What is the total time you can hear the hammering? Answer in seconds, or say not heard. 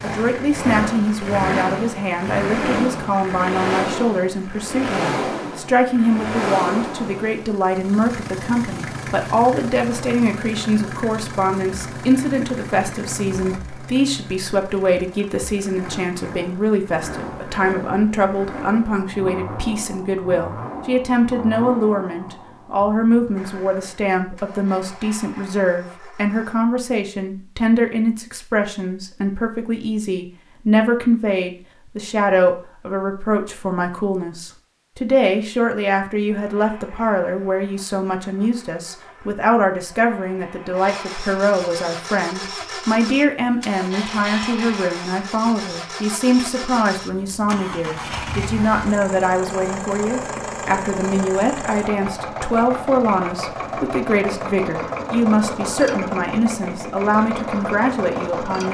not heard.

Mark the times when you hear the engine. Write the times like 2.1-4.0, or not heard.
0.0-26.6, 36.2-58.6.